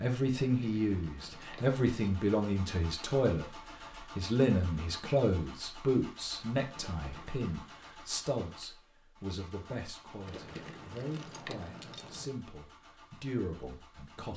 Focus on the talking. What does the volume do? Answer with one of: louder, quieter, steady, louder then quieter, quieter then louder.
quieter.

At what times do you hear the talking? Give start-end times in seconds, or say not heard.
0.0-14.3.